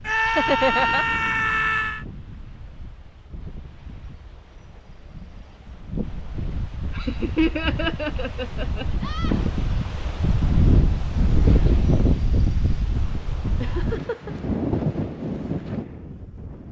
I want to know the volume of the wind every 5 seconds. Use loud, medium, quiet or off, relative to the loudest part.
quiet, medium, loud, medium.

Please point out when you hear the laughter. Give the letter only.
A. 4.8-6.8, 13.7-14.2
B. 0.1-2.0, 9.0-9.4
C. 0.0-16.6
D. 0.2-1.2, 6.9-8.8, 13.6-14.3
D.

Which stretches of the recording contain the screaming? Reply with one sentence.
The screaming can be heard from 0.1 to 2.0 s and from 9.0 to 9.4 s.